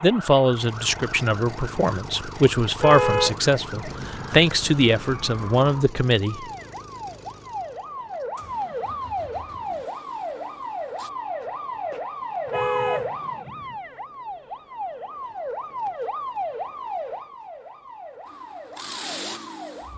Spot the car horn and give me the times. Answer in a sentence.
You can hear the car horn from 2.8 to 4.4 s and from 12.4 to 13.8 s.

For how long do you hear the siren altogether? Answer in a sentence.
You can hear the siren for 20 seconds altogether.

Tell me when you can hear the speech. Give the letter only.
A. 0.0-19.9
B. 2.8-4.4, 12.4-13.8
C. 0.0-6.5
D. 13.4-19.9
C.